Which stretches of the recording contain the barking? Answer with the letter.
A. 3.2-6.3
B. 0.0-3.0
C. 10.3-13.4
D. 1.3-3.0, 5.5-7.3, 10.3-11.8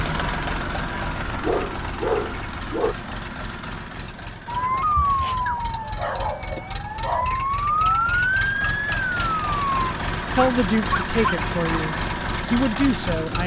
D.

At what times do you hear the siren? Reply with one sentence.
You can hear the siren from 4.5 to 9.7 s.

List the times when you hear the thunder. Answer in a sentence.
You can't hear the thunder here.